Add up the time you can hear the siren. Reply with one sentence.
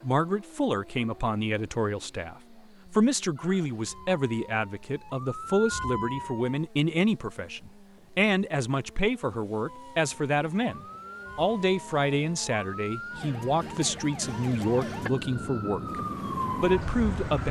You can hear the siren for 11 seconds altogether.